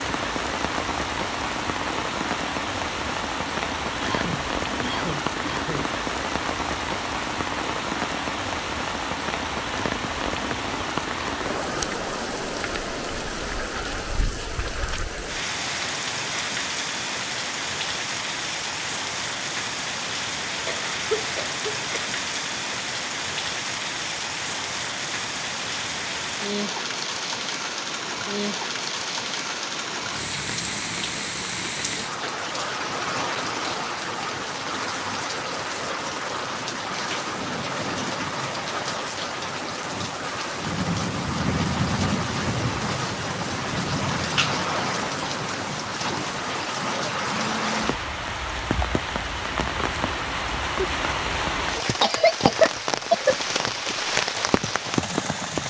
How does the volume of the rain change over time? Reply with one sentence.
The volume of the rain stays about the same.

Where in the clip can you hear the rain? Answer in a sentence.
The rain can be heard from 0.0 to 55.6 s.